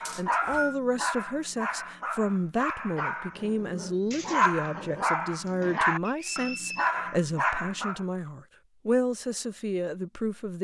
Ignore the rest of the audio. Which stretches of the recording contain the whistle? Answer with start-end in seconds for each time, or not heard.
0.1-0.8, 6.0-6.9.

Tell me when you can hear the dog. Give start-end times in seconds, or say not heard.
0.0-8.1.